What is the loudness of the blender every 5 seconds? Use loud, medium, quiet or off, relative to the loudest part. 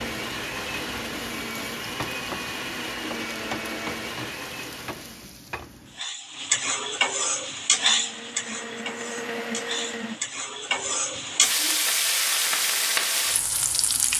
loud, loud, medium.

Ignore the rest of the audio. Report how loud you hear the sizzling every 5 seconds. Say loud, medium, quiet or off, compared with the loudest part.
quiet, loud, loud.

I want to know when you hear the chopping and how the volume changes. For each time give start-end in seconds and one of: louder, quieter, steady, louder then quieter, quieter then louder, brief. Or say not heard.
not heard.